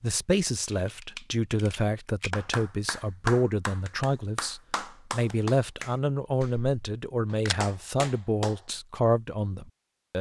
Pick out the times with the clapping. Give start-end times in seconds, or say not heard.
2.3-8.6.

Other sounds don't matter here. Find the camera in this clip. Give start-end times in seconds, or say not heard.
0.6-2.3.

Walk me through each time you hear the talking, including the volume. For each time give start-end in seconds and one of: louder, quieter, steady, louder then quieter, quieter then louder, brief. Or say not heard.
0.0-10.1 steady.